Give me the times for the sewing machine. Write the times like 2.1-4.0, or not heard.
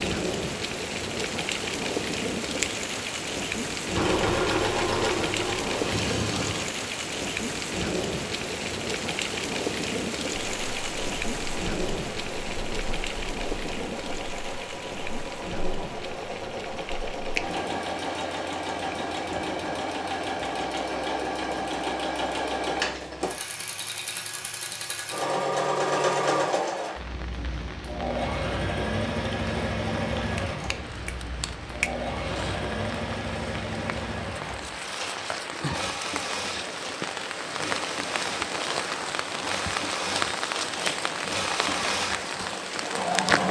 4.0-6.7, 10.6-43.4.